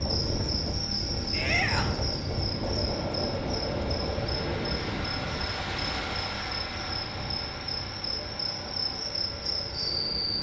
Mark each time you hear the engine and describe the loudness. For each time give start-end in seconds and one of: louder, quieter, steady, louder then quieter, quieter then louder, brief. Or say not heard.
0.0-10.3 louder then quieter.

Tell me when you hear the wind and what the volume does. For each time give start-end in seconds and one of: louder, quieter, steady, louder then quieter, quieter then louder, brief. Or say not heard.
0.0-10.3 quieter.